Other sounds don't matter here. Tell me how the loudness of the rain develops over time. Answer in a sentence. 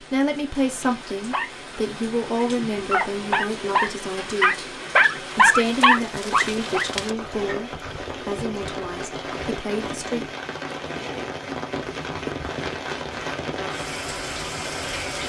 The loudness of the rain goes up.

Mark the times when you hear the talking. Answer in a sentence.
You can hear the talking from 0.0 to 10.2 s.